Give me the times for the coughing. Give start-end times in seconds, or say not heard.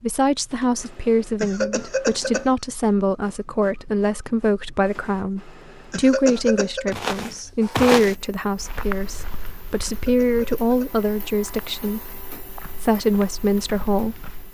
1.4-2.5, 5.9-7.0, 9.8-10.9.